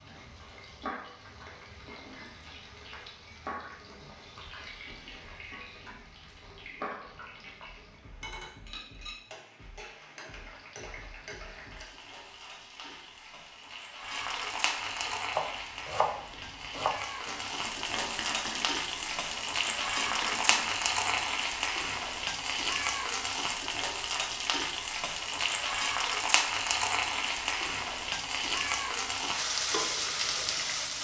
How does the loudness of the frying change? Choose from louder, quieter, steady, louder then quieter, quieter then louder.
louder.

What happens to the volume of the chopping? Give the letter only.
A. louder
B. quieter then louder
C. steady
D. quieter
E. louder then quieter
B.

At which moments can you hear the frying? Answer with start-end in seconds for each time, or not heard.
0.0-30.9.